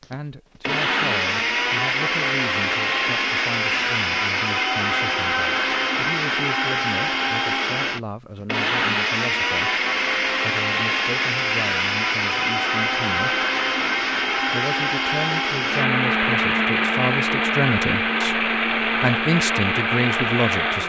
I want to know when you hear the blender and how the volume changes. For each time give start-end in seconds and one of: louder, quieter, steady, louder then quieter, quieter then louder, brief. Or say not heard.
0.0-20.8 steady.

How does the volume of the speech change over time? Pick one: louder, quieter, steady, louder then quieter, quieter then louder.
louder.